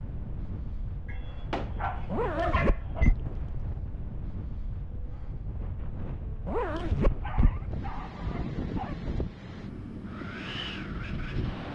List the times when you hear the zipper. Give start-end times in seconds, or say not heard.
2.1-3.7, 6.5-7.9.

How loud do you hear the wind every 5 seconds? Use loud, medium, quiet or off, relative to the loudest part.
medium, loud, loud.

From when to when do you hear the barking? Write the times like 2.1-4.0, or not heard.
1.1-3.1, 7.0-9.0.